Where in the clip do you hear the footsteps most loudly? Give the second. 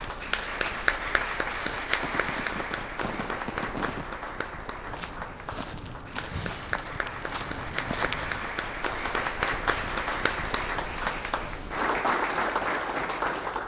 8 s.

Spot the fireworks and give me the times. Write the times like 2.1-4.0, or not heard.
1.9-4.0.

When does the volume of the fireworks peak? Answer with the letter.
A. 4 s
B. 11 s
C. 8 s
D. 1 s
A.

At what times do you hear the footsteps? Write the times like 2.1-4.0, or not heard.
4.8-9.2.